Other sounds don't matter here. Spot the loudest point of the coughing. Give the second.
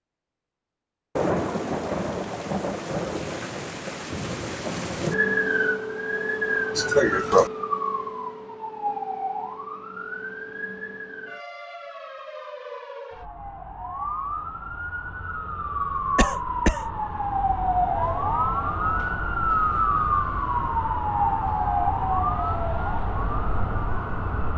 7 s.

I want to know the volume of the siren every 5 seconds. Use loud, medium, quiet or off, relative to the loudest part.
off, loud, medium, loud, loud.